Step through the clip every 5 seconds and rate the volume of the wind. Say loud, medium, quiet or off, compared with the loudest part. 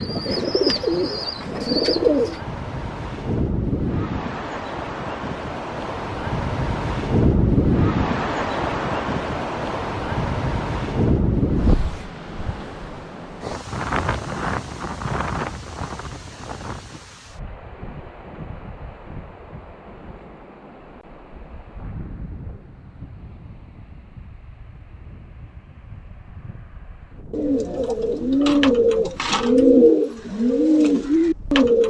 medium, loud, loud, medium, quiet, quiet, quiet.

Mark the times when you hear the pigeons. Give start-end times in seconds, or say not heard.
0.0-2.4, 27.3-31.8.